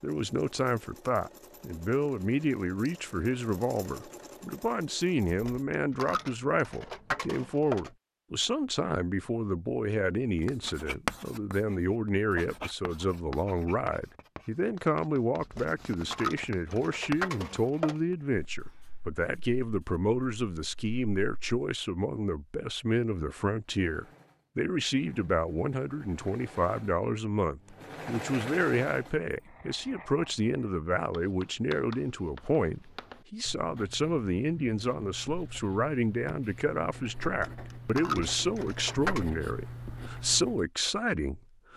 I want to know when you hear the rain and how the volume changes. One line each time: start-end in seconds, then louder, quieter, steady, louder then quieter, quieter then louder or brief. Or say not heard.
not heard.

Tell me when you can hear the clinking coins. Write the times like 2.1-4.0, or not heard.
5.2-7.9, 15.4-17.9, 37.2-39.2.